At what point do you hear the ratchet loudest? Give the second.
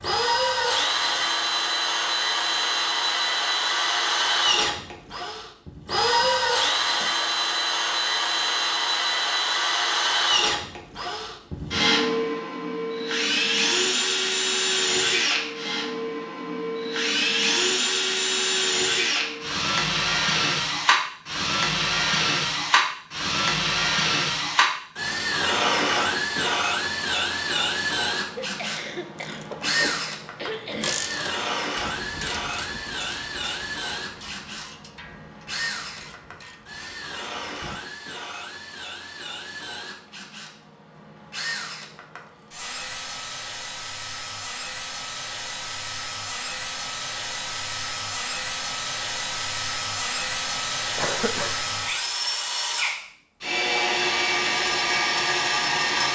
31 s.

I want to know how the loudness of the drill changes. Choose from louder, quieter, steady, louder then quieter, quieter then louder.
quieter then louder.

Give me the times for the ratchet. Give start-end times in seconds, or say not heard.
29.1-37.8.